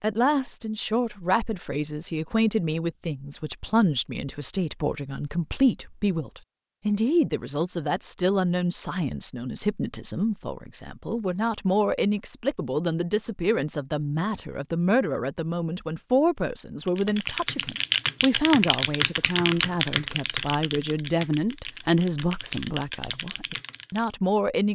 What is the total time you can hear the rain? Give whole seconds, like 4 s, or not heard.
not heard.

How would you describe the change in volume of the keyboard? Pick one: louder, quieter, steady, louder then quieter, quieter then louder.
quieter.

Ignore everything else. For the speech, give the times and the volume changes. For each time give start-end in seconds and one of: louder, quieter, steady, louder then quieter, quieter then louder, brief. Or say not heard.
0.0-24.6 steady.